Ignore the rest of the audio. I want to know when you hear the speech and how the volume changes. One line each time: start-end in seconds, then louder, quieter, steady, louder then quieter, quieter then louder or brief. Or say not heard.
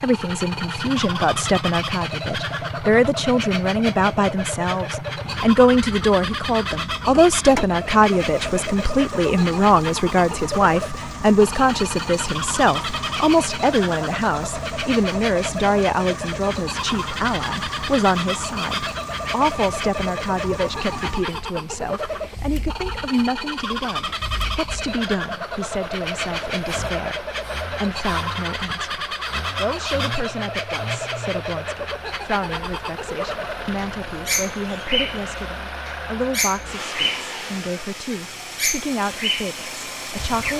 0.0-40.5 quieter.